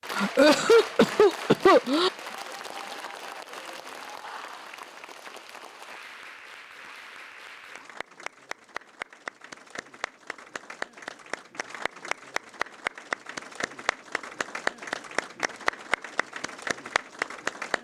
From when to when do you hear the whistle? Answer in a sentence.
The whistle can't be heard in this clip.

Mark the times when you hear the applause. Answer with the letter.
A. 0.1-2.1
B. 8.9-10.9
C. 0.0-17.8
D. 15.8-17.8
C.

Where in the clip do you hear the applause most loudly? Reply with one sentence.
The loudest moment of the applause is at 15 seconds.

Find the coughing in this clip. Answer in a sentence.
You can hear the coughing from 0.1 to 2.1 s.